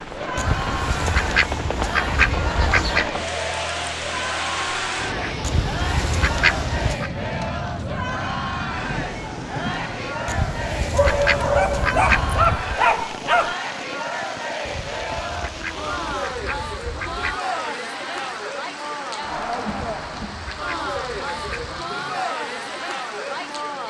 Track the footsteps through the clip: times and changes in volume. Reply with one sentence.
The footsteps can't be heard in this clip.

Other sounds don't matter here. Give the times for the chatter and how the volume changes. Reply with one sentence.
The chatter can be heard from 0.0 to 23.8 s, at a steady volume.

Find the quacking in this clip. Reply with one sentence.
You can hear the quacking from 0.3 to 3.1 s, from 5.4 to 7.1 s, from 10.2 to 12.4 s, from 14.7 to 17.4 s and from 19.9 to 21.8 s.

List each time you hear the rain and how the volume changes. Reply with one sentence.
The rain can be heard from 0.0 to 23.8 s, getting quieter.